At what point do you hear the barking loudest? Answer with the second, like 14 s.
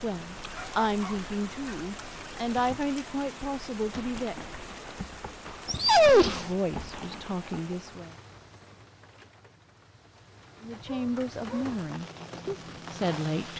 6 s.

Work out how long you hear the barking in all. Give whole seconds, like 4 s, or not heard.
3 s.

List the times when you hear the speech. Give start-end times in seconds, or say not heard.
0.0-4.3, 6.0-8.2, 10.6-13.5.